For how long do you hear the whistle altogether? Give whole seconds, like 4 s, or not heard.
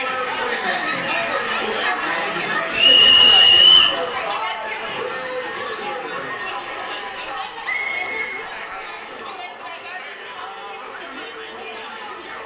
3 s.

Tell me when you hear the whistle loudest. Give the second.
4 s.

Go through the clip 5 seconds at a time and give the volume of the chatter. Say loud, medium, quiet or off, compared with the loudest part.
loud, medium, medium.